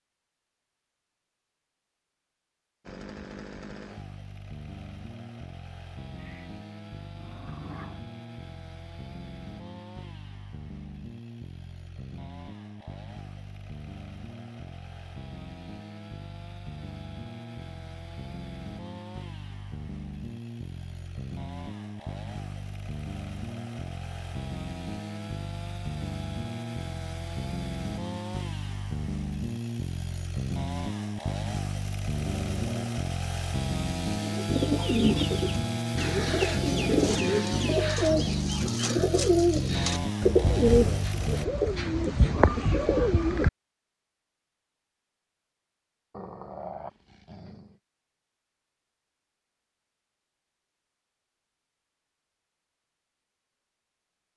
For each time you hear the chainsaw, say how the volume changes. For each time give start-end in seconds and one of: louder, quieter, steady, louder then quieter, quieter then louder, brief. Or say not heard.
2.9-41.5 louder.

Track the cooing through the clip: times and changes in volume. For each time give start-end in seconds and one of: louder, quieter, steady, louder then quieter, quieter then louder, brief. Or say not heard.
34.2-43.5 steady.